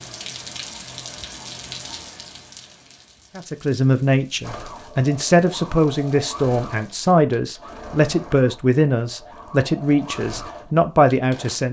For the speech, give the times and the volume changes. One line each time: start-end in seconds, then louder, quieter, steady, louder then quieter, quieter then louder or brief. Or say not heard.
3.4-11.6 steady.